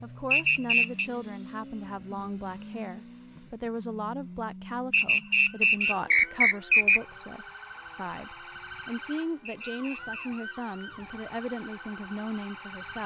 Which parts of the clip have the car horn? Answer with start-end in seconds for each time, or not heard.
not heard.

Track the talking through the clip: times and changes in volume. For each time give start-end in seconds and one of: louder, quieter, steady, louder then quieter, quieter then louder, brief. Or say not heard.
0.0-13.0 steady.